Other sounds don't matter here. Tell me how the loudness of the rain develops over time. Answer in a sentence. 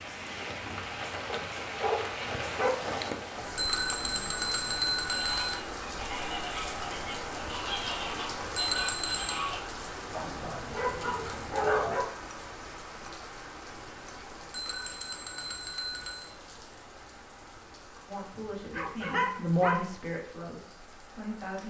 The loudness of the rain goes down.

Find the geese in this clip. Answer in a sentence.
The geese can be heard from 5.1 to 9.6 s.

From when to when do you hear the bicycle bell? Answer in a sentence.
The bicycle bell can be heard from 3.5 to 5.5 s, from 8.6 to 9.4 s and from 14.5 to 16.3 s.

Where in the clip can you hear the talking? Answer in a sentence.
The talking can be heard from 18.1 to 21.6 s.